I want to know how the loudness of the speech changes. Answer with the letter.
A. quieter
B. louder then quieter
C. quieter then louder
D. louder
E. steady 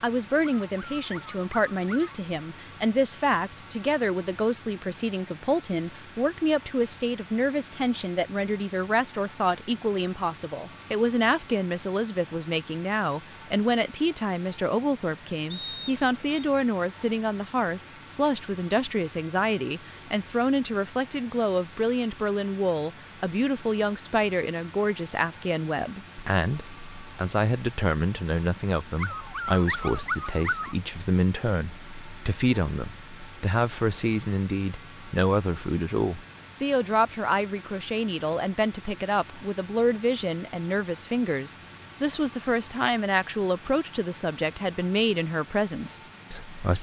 E.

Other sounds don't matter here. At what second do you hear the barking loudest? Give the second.
30 s.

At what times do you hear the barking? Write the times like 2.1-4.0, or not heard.
0.4-2.2, 28.9-30.8.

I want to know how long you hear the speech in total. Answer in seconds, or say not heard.
47 s.